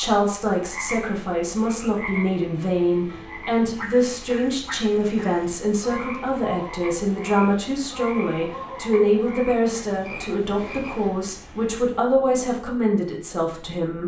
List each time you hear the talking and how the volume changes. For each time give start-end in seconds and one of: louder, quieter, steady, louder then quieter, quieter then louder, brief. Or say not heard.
0.0-14.0 steady.